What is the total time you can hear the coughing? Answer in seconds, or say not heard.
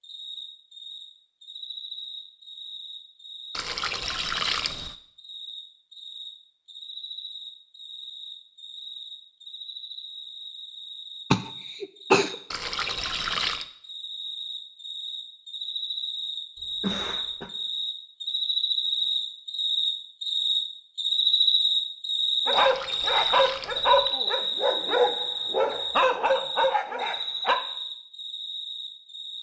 2 s.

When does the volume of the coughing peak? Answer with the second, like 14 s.
12 s.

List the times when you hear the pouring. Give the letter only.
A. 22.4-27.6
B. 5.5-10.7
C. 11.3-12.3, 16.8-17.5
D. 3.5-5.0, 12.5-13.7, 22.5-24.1
D.